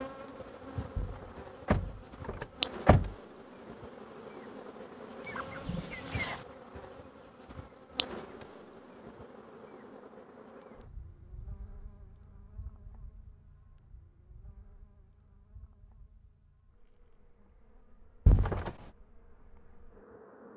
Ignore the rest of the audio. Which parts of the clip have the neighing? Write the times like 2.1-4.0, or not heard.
not heard.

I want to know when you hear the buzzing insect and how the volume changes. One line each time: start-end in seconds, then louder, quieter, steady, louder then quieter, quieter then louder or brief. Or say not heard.
0.0-20.5 quieter.